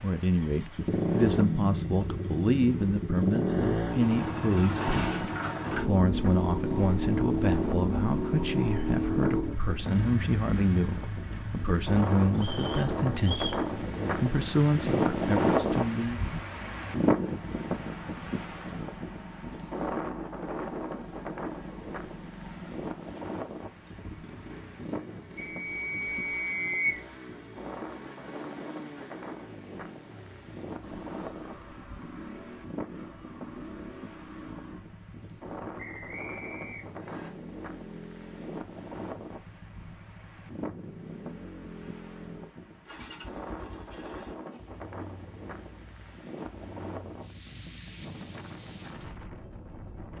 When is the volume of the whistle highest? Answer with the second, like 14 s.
27 s.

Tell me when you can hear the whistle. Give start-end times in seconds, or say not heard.
12.3-13.6, 25.4-27.1, 35.8-37.3.